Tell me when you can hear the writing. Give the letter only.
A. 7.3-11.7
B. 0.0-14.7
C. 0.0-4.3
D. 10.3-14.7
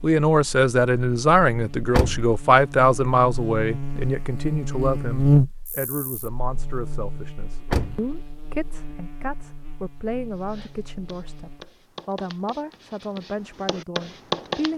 D.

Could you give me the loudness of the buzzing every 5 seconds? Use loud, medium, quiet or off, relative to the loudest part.
medium, loud, quiet.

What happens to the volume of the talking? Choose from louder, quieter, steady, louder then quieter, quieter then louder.
quieter.